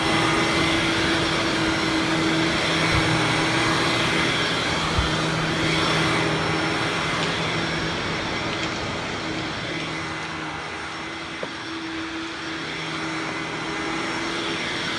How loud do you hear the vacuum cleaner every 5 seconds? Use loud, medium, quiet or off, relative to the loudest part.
loud, loud, medium.